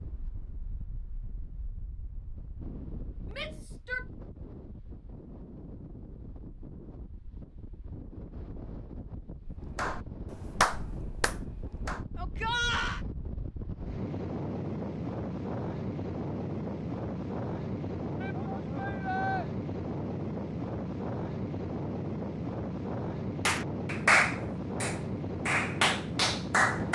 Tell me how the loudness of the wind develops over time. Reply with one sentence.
The loudness of the wind goes up.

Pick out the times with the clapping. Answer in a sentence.
The clapping can be heard from 9.8 to 12.1 s and from 23.4 to 26.9 s.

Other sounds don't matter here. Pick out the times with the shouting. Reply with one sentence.
You can hear the shouting from 3.3 to 4.0 s, from 12.2 to 13.0 s and from 18.2 to 19.4 s.